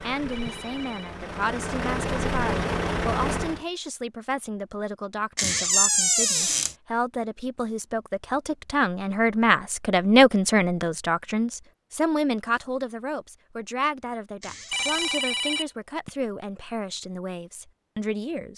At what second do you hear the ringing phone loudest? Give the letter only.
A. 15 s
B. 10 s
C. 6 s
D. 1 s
A.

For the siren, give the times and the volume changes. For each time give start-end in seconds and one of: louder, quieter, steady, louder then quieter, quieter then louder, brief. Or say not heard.
not heard.